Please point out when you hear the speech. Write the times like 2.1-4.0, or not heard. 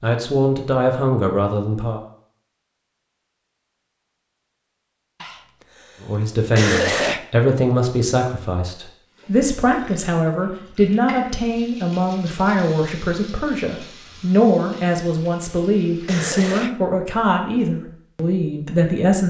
0.0-2.0, 6.0-19.2.